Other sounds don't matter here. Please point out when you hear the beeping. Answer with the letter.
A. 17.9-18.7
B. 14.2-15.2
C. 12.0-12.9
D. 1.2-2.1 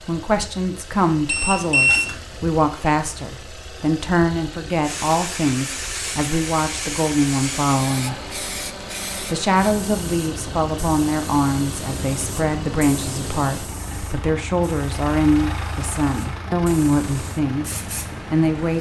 D.